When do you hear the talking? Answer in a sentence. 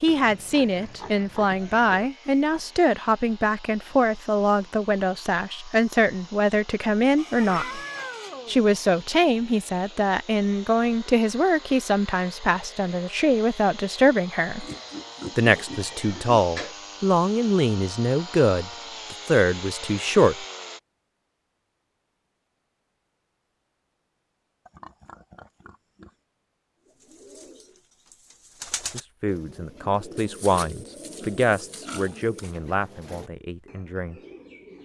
The talking can be heard from 0.0 to 7.8 s, from 8.4 to 14.7 s, from 15.3 to 20.4 s and from 28.9 to 34.2 s.